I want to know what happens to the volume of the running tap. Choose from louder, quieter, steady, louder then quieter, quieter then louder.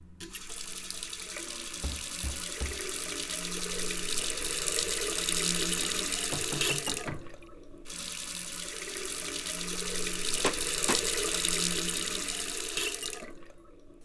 louder.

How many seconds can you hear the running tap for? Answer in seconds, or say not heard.
14 s.